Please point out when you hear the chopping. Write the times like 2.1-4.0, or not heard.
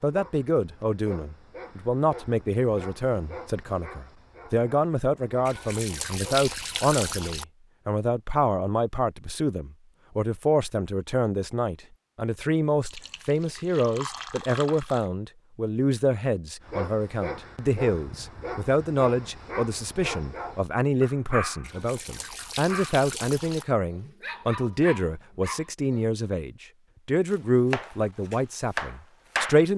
27.3-29.6.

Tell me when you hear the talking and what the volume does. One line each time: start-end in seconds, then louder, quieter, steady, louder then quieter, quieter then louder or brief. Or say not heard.
0.0-29.7 steady.